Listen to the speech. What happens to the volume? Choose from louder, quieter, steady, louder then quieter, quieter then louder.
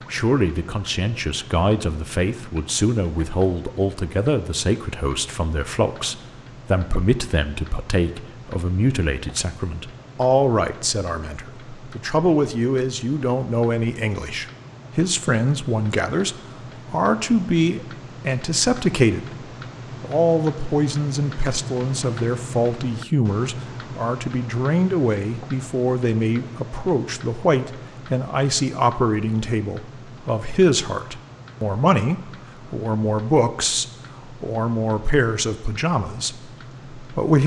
steady.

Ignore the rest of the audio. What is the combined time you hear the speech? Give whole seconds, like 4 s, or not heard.
37 s.